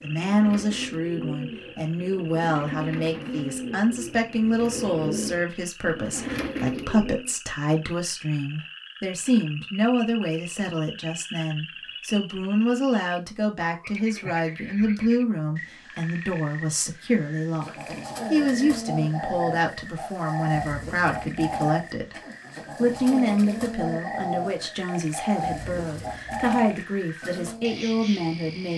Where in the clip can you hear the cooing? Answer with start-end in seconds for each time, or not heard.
0.0-7.3, 17.6-27.9.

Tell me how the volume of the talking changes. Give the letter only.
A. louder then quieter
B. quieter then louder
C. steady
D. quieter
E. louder
C.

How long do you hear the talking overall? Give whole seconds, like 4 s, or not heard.
29 s.